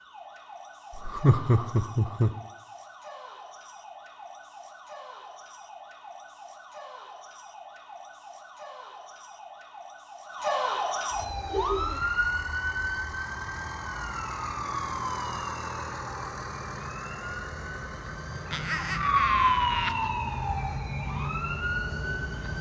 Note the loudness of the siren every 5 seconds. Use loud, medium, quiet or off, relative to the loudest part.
quiet, quiet, loud, loud, loud.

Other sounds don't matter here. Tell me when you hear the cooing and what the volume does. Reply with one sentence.
The cooing can't be heard in this clip.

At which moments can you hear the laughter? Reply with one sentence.
The laughter can be heard from 0.9 to 2.3 s, from 11.5 to 12.1 s and from 18.5 to 20.1 s.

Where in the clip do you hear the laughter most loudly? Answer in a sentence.
The loudest moment of the laughter is at 1 second.